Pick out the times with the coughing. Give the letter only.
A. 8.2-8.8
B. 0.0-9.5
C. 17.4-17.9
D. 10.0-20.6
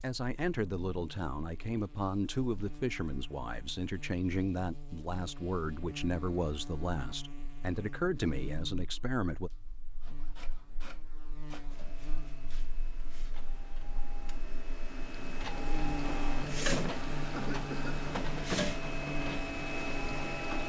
C.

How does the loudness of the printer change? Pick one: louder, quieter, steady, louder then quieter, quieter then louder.
louder.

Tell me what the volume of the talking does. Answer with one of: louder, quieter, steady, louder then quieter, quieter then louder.
steady.